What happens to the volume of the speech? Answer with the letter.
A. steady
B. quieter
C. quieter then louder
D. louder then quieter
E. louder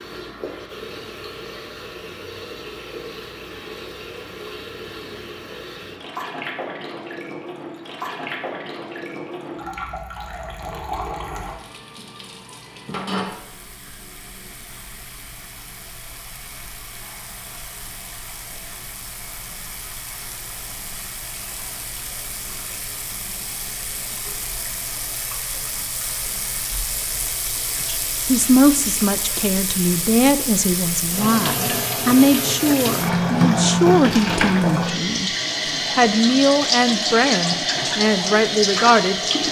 A.